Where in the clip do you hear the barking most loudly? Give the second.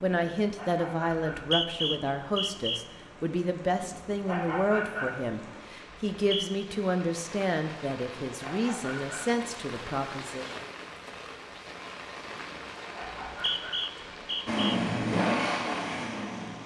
5 s.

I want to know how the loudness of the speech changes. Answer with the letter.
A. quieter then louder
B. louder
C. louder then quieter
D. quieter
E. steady
E.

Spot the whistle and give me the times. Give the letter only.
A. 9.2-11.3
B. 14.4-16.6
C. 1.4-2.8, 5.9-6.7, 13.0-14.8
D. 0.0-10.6
C.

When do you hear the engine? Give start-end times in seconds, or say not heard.
14.4-16.6.